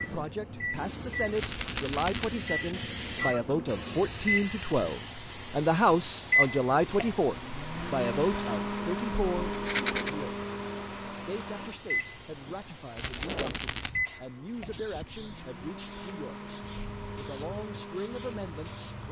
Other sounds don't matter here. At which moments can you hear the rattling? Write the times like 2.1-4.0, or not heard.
1.4-2.3, 9.5-10.1, 12.9-13.9.